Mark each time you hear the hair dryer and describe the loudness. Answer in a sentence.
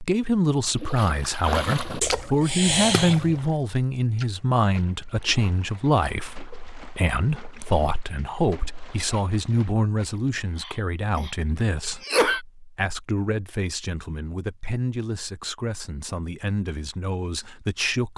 The hair dryer can't be heard in this clip.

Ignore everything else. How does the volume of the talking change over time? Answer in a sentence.
The loudness of the talking goes down.